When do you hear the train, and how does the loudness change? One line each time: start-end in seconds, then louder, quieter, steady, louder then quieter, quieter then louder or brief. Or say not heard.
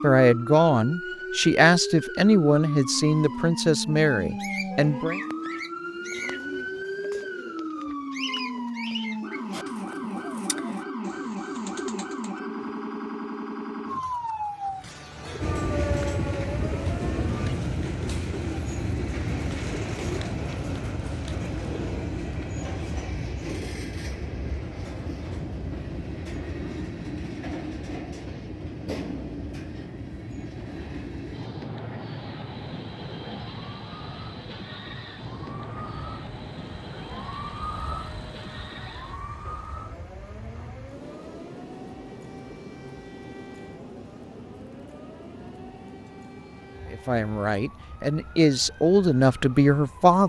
15.4-50.2 quieter.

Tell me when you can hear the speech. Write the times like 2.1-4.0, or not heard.
0.0-5.2, 46.9-50.2.